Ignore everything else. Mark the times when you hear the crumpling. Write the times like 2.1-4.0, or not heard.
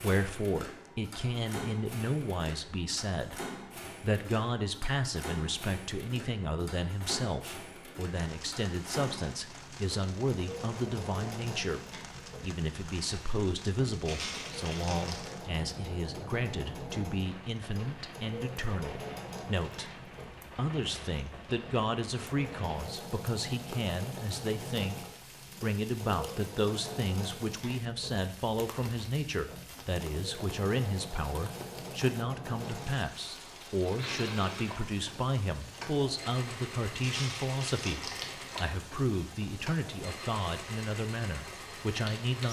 14.1-15.3, 37.0-38.4.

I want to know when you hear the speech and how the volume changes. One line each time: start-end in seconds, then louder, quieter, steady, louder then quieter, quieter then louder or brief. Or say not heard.
0.0-42.4 steady.